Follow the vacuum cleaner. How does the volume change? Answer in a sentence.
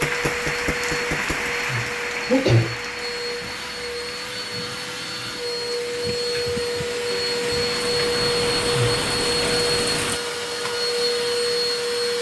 The volume of the vacuum cleaner goes up.